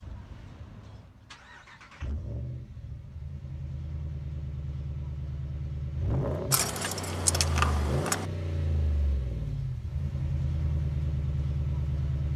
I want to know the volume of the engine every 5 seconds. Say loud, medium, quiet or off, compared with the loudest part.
medium, loud, loud.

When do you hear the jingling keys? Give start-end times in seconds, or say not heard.
6.5-8.2.